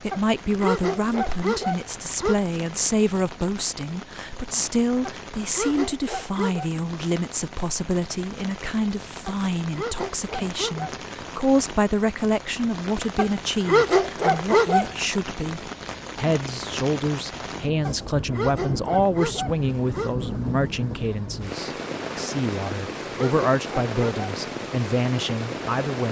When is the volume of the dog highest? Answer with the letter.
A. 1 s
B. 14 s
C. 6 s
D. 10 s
B.